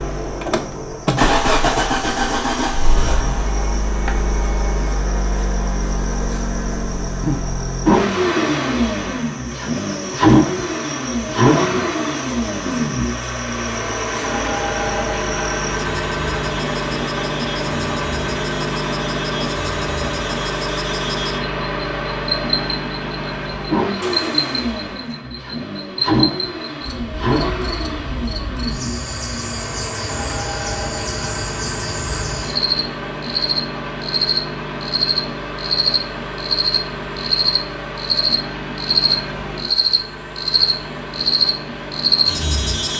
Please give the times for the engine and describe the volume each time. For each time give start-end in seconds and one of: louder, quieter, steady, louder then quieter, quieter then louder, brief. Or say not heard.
0.0-42.9 quieter.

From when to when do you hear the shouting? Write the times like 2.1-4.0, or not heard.
not heard.